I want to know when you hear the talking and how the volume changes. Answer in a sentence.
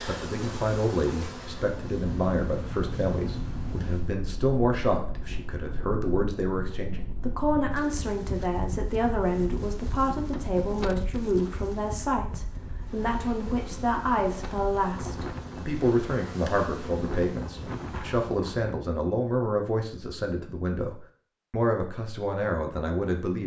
The talking can be heard from 0.1 to 23.4 s, at a steady volume.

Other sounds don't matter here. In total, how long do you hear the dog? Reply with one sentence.
The dog can't be heard in this clip.